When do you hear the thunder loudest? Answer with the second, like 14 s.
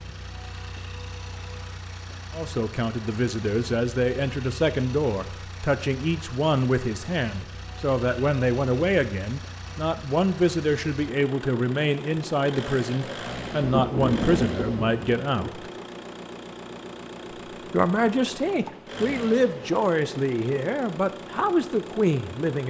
14 s.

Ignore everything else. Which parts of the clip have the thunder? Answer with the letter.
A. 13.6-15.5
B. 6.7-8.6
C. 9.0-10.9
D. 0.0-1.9
A.